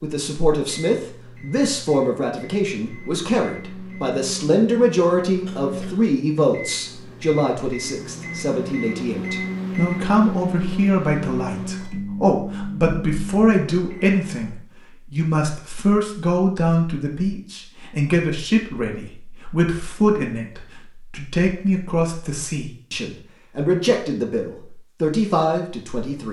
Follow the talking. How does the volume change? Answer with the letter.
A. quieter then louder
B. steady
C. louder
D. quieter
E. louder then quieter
B.